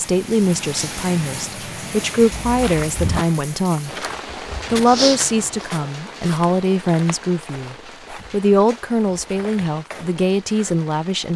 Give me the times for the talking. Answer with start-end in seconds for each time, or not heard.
0.0-3.9, 4.7-11.3.